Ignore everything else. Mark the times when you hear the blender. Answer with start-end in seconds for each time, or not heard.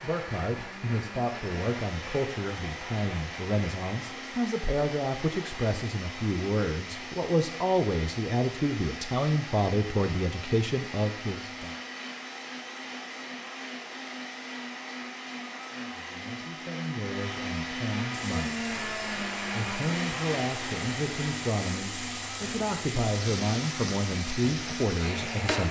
0.0-25.6.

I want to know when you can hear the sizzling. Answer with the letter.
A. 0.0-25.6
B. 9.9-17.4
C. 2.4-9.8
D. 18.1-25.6
D.